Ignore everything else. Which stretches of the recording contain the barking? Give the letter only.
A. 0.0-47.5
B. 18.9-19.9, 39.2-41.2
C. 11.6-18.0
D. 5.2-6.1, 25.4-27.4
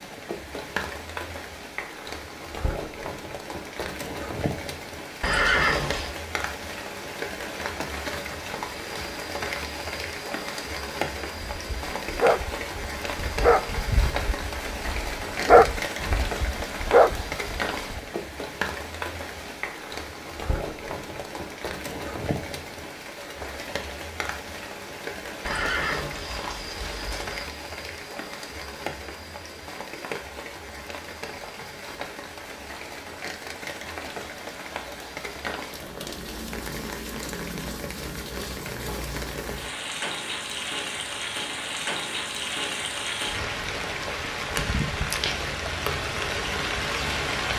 C.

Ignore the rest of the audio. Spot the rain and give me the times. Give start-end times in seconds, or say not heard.
0.0-47.5.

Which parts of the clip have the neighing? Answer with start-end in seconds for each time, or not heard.
5.2-6.1, 25.4-27.4.